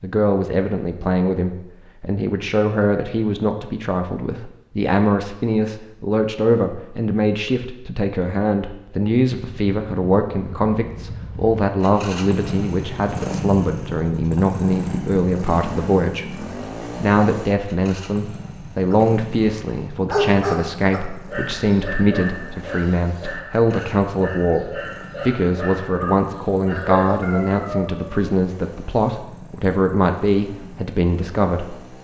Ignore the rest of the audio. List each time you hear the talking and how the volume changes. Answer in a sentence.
The talking can be heard from 0.0 to 31.8 s, at a steady volume.